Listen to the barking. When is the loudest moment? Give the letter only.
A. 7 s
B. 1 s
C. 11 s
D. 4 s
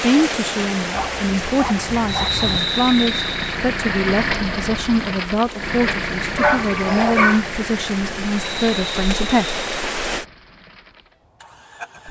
A.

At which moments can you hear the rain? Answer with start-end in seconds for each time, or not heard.
0.0-10.2.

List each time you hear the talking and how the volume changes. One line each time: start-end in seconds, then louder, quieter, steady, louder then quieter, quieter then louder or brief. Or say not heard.
0.0-9.6 steady.